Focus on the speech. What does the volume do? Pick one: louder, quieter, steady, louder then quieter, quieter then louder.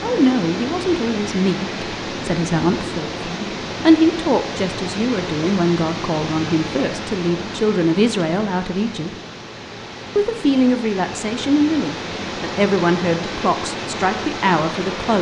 steady.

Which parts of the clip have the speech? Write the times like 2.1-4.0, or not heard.
0.0-9.1, 10.2-15.1.